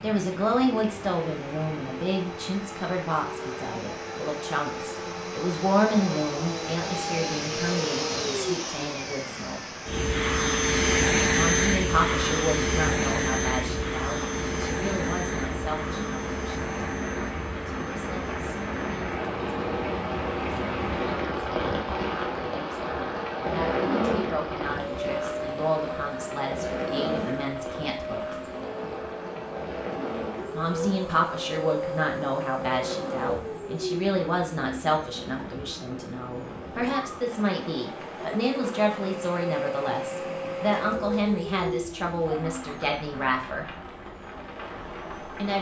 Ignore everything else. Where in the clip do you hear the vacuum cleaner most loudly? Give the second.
11 s.